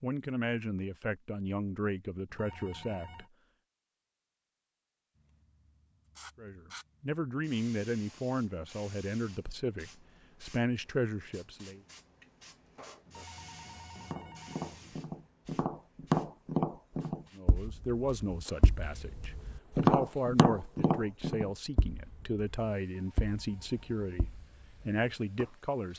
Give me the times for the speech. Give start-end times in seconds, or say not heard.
0.0-3.2, 6.3-11.8, 17.3-25.9.